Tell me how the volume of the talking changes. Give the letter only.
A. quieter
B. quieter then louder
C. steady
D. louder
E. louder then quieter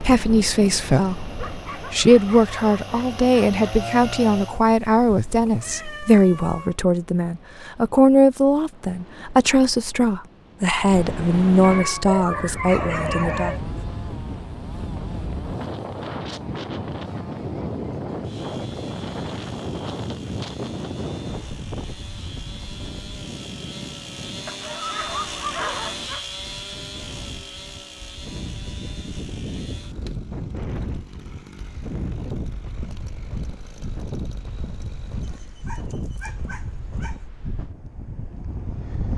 C.